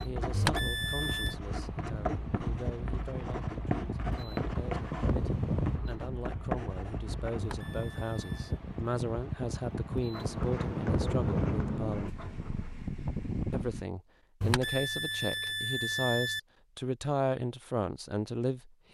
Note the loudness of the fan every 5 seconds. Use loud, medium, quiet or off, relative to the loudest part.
loud, loud, loud, off.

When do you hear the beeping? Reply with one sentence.
The beeping can be heard from 0.3 to 1.4 s, from 7.3 to 8.6 s and from 14.4 to 16.4 s.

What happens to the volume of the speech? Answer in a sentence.
The volume of the speech goes up.